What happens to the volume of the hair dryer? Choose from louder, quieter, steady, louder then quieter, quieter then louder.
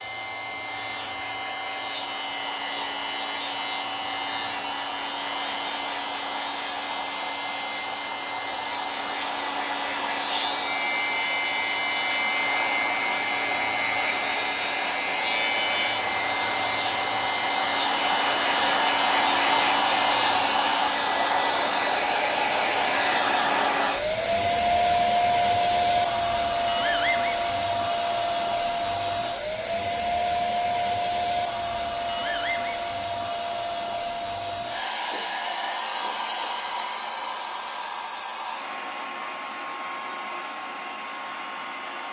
louder then quieter.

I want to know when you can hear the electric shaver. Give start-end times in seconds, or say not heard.
0.0-20.9.